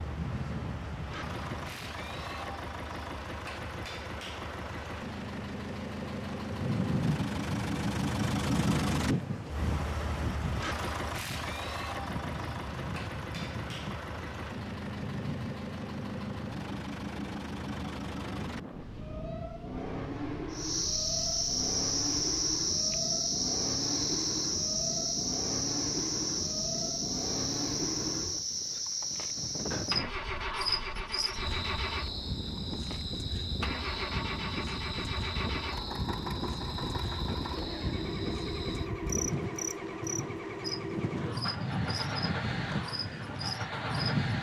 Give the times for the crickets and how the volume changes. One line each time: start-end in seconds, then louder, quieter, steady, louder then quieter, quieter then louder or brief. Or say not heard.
20.5-44.1 quieter.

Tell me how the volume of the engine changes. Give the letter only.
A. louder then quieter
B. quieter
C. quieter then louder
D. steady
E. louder
D.